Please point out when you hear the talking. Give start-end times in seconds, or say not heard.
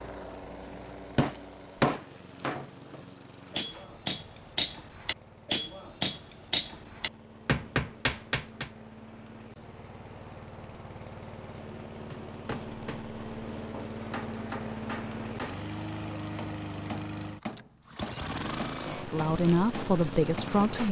18.9-20.8.